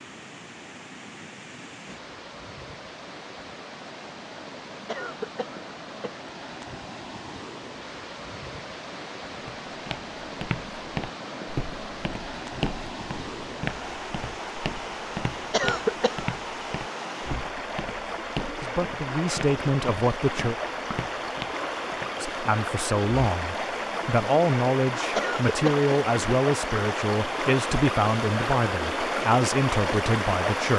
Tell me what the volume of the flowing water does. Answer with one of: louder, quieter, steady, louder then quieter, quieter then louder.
louder.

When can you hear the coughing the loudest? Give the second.
16 s.